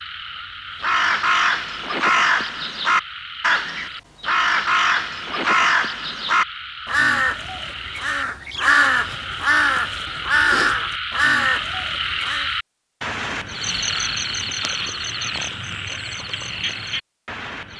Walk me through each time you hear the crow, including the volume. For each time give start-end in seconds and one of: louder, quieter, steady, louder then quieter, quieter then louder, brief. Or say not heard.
0.8-12.5 steady.